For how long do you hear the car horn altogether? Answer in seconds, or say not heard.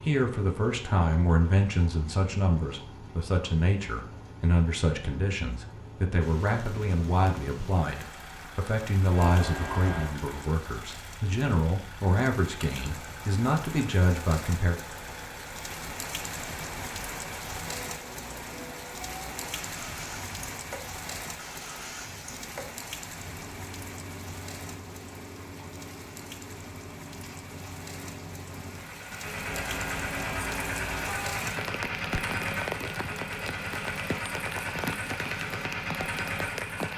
3 s.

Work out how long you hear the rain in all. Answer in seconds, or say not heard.
31 s.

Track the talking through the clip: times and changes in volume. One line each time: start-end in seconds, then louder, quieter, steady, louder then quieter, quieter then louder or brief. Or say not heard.
0.0-14.8 steady.